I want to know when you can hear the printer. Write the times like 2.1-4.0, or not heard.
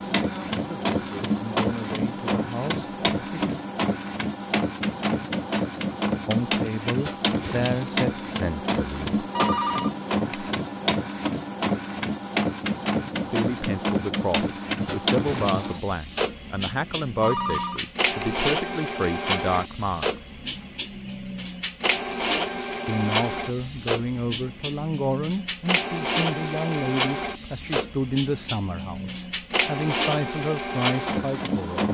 0.0-31.8.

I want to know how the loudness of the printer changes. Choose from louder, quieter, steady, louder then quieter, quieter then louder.
steady.